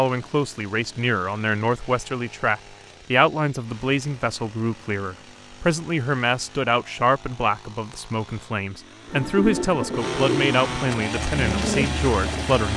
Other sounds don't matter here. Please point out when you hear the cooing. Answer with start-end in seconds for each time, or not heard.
9.1-12.6.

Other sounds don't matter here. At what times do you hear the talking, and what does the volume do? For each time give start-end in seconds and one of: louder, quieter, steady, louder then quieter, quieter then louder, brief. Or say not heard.
0.0-12.7 steady.